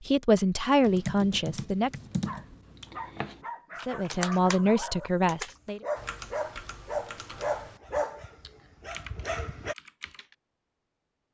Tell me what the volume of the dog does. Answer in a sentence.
The loudness of the dog goes up.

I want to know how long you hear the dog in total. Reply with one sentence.
The dog can be heard for 8 seconds in total.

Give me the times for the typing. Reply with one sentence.
The typing can be heard from 0.8 to 10.3 s.